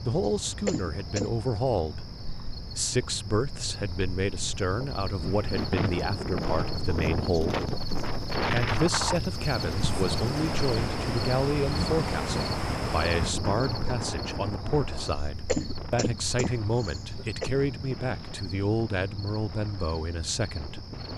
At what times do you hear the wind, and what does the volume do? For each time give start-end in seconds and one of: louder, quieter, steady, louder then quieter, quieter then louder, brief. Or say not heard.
5.2-21.1 quieter.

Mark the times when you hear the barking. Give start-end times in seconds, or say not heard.
not heard.